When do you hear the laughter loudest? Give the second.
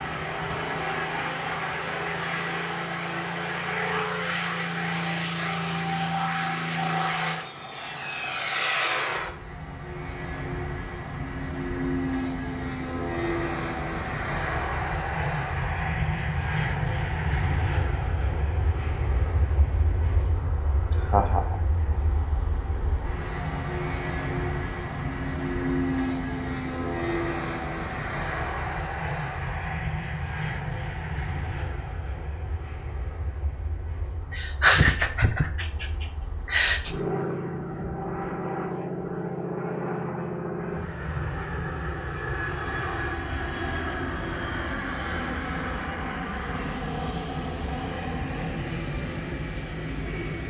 35 s.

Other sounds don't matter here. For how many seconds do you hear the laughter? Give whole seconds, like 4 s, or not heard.
3 s.